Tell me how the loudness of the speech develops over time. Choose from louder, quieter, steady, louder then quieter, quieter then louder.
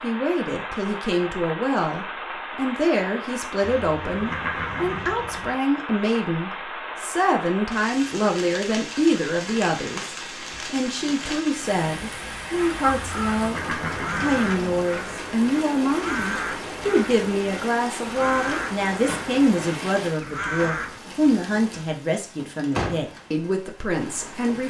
steady.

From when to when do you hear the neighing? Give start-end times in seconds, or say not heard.
3.6-5.5, 13.1-14.6.